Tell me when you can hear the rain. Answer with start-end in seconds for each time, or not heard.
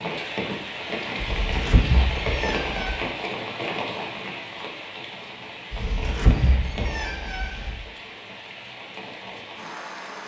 0.0-10.2.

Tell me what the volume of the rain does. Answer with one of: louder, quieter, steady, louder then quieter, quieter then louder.
quieter.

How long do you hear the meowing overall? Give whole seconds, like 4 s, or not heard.
4 s.